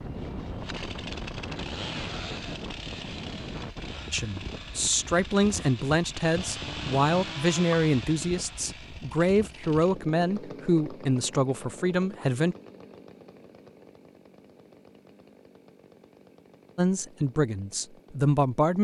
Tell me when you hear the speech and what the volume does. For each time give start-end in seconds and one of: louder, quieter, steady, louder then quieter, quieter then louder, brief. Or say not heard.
4.1-12.6 steady
16.8-18.7 brief.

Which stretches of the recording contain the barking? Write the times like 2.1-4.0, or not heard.
not heard.